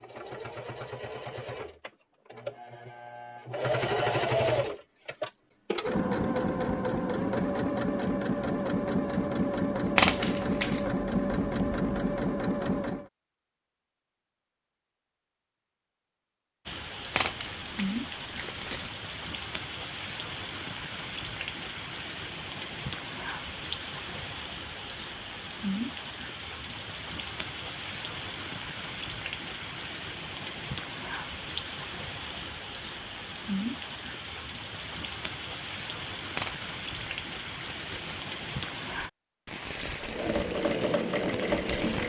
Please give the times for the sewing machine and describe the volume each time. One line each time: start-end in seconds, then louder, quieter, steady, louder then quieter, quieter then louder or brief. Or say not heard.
0.0-13.1 louder
40.0-42.0 brief.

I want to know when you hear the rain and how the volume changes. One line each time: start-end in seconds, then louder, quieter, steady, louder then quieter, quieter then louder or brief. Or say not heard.
16.6-42.0 steady.